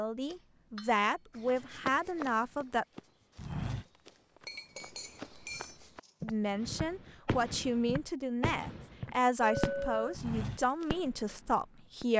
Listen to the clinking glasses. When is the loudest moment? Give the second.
10 s.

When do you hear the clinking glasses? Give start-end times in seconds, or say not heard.
0.3-1.4, 4.5-6.1, 9.4-10.1.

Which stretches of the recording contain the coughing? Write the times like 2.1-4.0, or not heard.
not heard.